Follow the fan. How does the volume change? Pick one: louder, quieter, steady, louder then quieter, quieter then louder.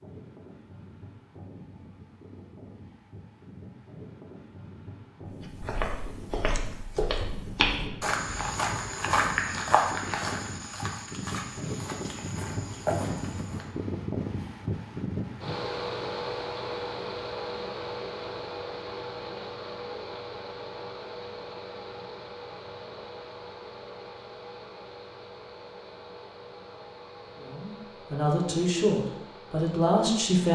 louder then quieter.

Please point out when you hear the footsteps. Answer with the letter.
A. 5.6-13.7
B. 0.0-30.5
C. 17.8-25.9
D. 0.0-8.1
A.